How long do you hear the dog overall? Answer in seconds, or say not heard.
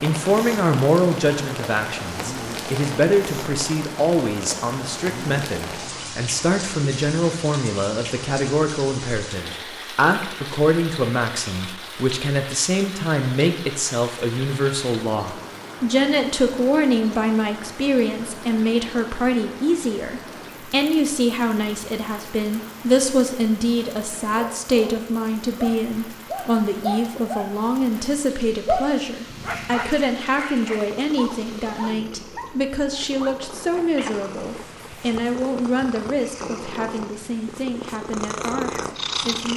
10 s.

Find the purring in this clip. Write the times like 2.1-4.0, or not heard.
29.2-39.5.